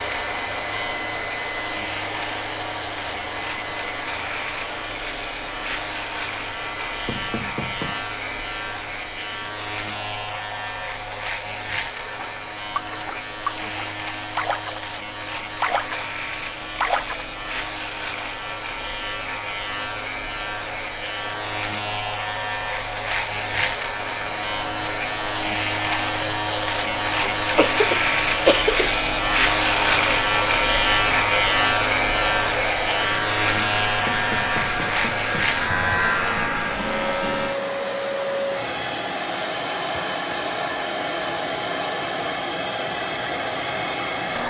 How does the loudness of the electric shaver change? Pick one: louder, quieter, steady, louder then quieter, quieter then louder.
louder.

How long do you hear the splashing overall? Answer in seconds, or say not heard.
4 s.